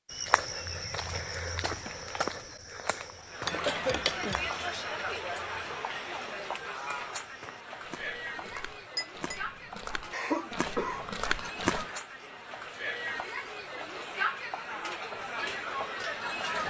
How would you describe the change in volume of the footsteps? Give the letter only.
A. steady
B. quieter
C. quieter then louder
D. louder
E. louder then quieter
C.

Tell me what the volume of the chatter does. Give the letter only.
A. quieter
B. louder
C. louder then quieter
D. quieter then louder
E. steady
D.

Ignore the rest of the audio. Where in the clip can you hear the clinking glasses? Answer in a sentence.
The clinking glasses can be heard from 3.5 to 4.8 s and from 8.3 to 9.4 s.